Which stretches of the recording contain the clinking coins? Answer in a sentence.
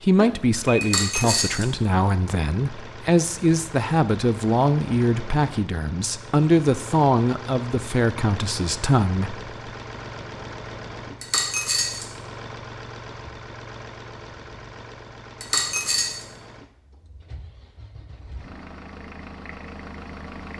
You can hear the clinking coins from 0.8 to 1.6 s, from 11.2 to 12.1 s and from 15.4 to 16.2 s.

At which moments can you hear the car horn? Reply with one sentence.
The car horn can't be heard in this clip.